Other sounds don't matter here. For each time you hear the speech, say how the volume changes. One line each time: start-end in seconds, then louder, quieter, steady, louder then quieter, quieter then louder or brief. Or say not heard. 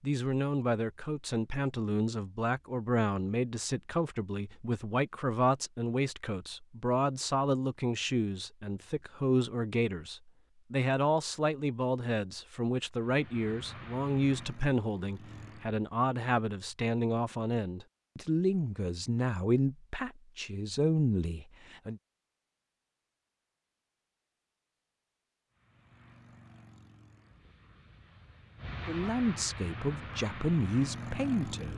0.0-22.0 steady
28.9-31.7 brief.